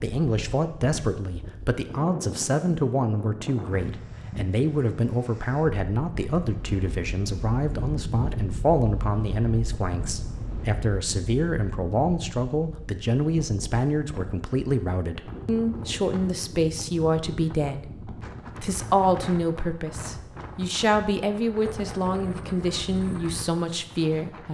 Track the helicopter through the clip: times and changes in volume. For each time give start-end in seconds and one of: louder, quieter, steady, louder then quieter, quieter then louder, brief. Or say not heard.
not heard.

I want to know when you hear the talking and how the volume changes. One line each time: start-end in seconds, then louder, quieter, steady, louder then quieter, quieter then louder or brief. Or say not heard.
0.0-24.4 steady.